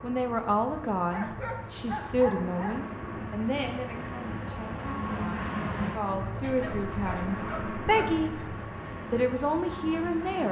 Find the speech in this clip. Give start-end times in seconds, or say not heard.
0.0-8.3, 9.1-10.4.